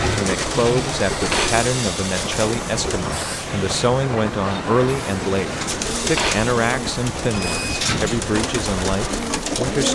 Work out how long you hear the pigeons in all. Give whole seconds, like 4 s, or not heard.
8 s.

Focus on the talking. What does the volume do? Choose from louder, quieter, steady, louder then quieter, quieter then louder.
steady.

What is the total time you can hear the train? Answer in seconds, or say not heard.
10 s.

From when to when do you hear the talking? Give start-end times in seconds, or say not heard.
0.0-9.9.